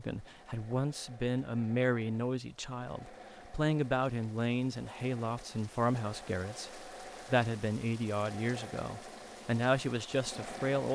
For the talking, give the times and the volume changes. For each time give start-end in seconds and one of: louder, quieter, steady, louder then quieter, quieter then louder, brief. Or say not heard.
0.0-10.8 steady.